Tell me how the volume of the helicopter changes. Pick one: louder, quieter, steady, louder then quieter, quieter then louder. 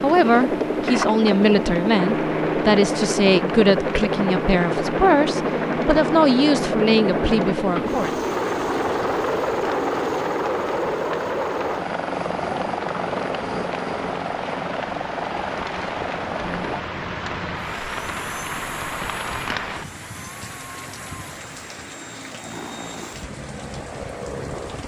quieter.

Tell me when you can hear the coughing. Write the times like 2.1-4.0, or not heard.
not heard.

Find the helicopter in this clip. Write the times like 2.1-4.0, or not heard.
0.0-24.8.